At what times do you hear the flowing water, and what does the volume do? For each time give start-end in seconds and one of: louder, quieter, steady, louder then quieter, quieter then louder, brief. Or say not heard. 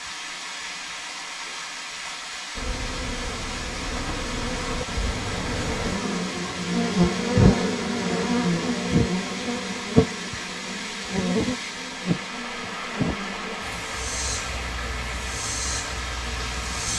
0.0-16.9 steady.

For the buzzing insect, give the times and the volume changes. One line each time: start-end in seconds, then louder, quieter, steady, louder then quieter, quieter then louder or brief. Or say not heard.
2.5-16.9 louder then quieter.